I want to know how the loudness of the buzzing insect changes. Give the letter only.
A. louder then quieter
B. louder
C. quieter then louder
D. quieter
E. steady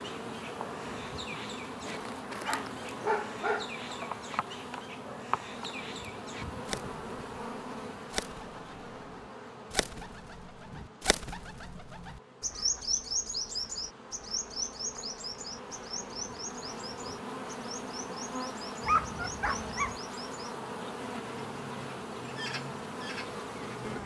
C.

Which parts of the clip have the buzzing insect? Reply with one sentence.
The buzzing insect can be heard from 0.0 to 24.0 s.